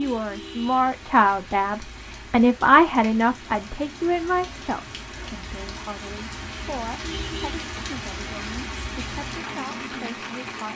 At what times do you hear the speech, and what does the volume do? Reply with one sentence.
The speech can be heard from 0.0 to 10.7 s, getting quieter.